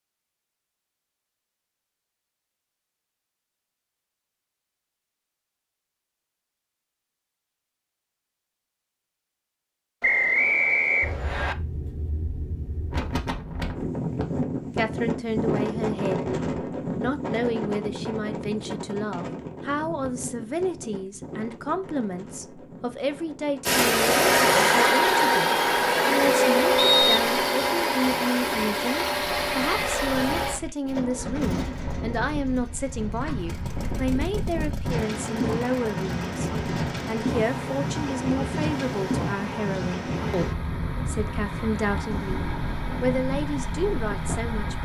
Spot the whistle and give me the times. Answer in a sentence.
You can hear the whistle from 10.0 to 11.6 s and from 26.8 to 27.5 s.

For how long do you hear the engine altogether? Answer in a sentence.
The engine can be heard for 21 seconds in total.